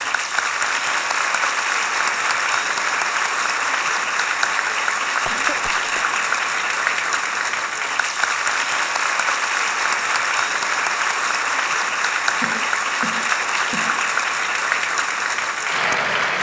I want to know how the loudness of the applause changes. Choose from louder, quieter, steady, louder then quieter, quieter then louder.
steady.